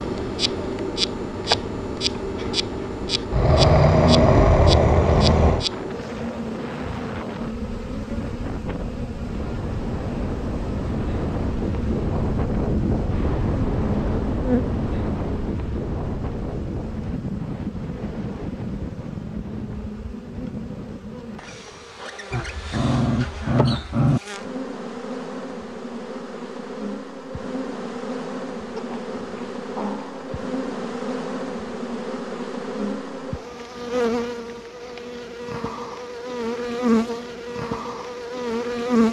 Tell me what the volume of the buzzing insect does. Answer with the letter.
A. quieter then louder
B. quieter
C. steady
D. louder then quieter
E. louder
A.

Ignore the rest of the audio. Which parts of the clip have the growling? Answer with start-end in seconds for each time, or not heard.
3.3-5.7, 22.3-24.2, 28.8-30.4.